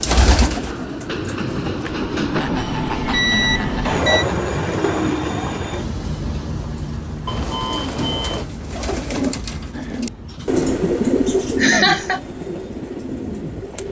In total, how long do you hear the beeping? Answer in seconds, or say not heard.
2 s.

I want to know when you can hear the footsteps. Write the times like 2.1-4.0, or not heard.
not heard.